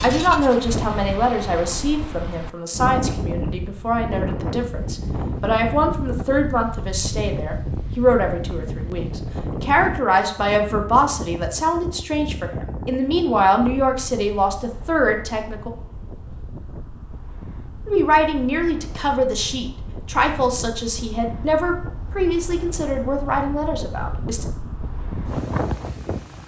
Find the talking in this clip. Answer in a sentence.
You can hear the talking from 0.0 to 15.7 s and from 17.9 to 24.4 s.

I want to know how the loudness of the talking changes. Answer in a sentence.
The volume of the talking stays about the same.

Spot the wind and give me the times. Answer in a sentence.
The wind can be heard from 0.0 to 26.4 s.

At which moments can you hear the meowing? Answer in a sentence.
You can't hear the meowing here.